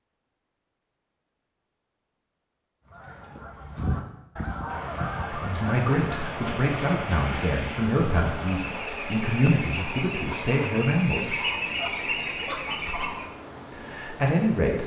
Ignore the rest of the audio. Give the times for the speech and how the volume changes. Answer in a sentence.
The speech can be heard from 5.3 to 11.3 s, at a steady volume; and briefly from 13.7 to 14.8 s.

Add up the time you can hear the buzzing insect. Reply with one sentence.
The buzzing insect can't be heard in this clip.